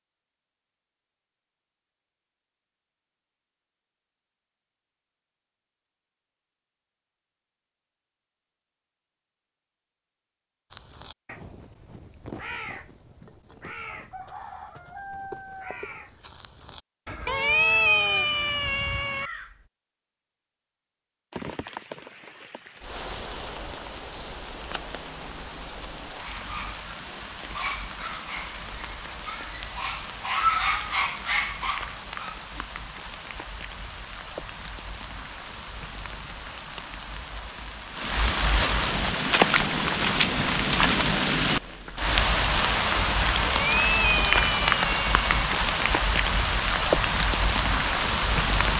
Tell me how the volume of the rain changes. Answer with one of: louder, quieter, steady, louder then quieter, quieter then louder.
louder.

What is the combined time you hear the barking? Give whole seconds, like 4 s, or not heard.
6 s.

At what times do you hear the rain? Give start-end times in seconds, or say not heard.
21.3-48.7.